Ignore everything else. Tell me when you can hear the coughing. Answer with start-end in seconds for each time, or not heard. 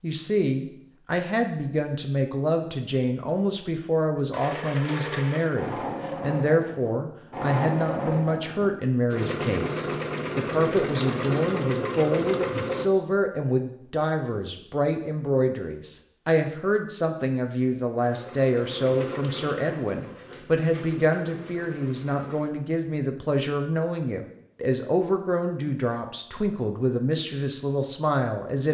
not heard.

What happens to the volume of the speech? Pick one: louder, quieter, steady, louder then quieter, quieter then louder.
steady.